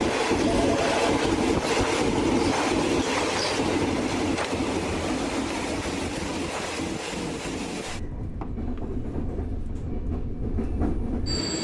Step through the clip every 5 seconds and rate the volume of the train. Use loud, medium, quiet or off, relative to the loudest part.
loud, medium, medium.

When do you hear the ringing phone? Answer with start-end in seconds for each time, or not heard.
0.5-1.2.